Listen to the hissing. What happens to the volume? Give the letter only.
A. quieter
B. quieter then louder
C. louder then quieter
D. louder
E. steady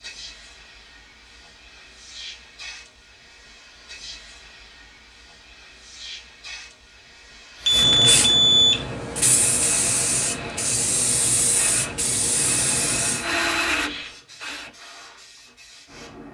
C.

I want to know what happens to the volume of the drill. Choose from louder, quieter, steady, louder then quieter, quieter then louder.
louder.